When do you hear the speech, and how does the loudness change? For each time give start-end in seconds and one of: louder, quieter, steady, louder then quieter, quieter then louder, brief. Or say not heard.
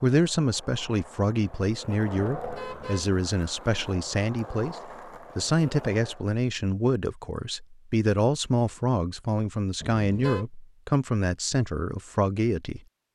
0.0-12.8 steady.